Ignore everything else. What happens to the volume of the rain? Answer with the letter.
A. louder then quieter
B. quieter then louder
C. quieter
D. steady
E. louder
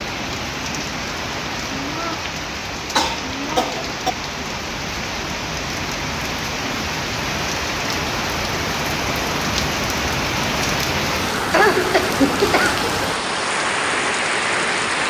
E.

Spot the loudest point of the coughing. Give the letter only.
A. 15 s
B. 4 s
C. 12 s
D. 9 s
C.